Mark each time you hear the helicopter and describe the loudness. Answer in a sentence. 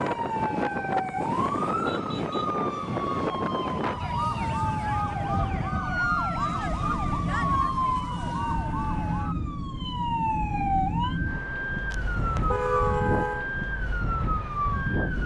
The helicopter can't be heard in this clip.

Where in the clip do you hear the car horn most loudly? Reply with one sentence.
The volume of the car horn peaks at 13 seconds.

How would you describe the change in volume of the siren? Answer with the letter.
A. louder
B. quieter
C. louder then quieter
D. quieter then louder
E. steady
E.